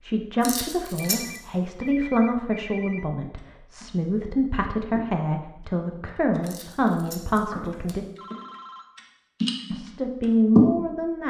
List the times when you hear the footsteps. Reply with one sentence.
The footsteps can't be heard in this clip.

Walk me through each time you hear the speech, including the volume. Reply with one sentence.
The speech can be heard from 0.0 to 8.1 s, at a steady volume; and briefly from 9.7 to 11.2 s.